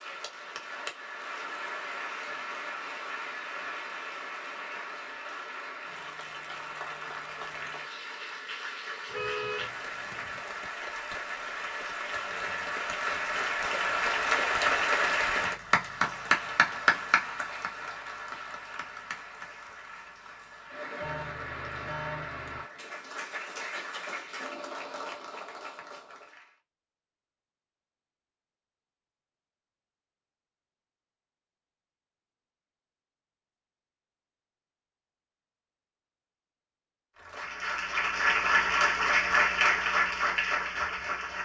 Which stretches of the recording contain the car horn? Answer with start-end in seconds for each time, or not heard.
9.1-10.4, 21.0-22.6.